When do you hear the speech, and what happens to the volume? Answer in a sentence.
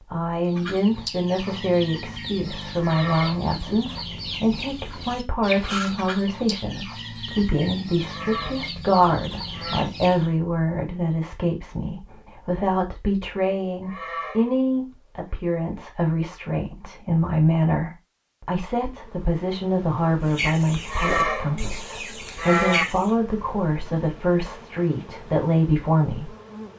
You can hear the speech from 0.1 to 26.4 s, at a steady volume.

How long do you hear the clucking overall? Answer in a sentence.
You can hear the clucking for 13 seconds altogether.